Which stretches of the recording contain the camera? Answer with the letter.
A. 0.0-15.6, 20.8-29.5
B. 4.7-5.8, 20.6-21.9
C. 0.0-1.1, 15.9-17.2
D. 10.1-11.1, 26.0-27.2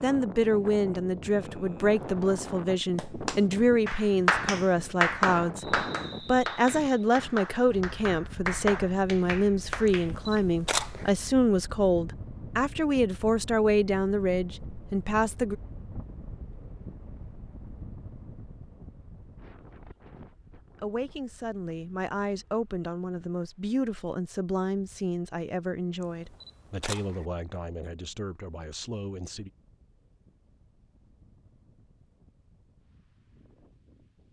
D.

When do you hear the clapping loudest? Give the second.
5 s.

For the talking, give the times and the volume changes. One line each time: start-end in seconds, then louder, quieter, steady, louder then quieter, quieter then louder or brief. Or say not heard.
0.0-15.6 steady
20.8-29.5 quieter.